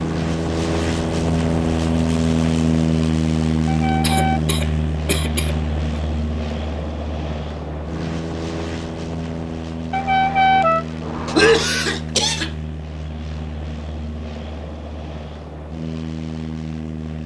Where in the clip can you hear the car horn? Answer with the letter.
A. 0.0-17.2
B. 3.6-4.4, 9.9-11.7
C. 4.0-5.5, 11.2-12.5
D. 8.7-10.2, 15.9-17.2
B.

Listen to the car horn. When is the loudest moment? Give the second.
11 s.